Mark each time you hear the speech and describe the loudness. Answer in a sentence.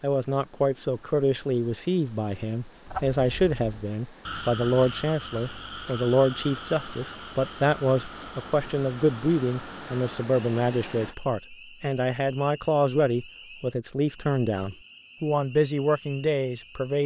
You can hear the speech from 0.0 to 17.0 s, at a steady volume.